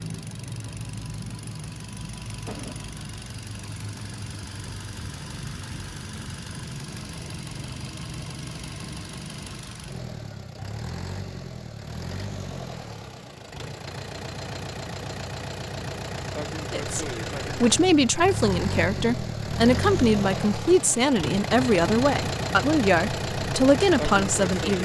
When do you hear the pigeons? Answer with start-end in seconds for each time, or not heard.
not heard.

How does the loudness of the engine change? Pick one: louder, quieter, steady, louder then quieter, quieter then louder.
louder.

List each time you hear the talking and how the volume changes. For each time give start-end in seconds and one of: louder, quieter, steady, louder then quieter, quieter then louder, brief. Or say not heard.
16.7-24.7 steady.